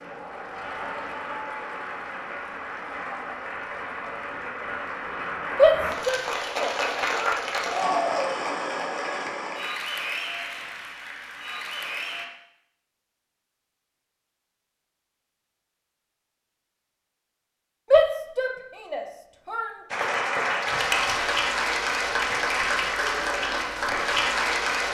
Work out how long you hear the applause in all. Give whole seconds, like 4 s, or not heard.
17 s.